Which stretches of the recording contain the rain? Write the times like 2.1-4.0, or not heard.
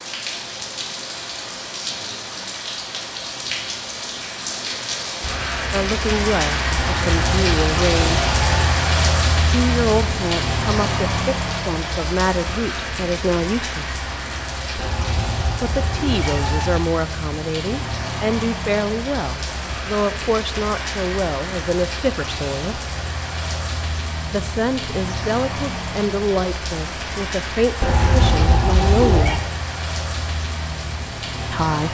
0.0-31.9.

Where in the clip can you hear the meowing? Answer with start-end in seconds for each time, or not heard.
6.8-8.8, 14.8-16.8, 27.8-29.4.